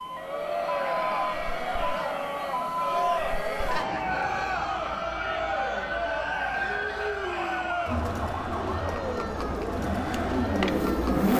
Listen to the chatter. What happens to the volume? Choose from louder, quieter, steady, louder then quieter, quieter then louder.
steady.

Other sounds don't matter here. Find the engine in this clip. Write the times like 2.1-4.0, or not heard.
9.4-11.3.